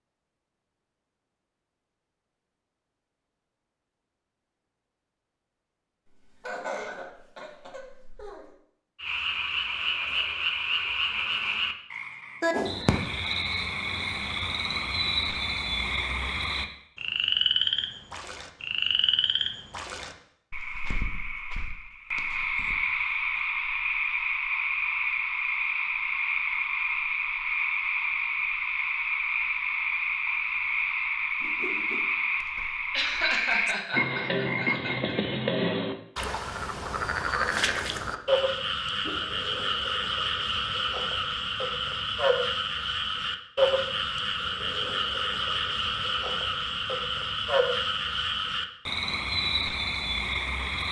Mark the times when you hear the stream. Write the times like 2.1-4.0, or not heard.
not heard.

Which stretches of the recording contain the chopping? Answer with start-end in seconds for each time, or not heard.
not heard.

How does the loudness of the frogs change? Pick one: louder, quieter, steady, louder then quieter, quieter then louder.
steady.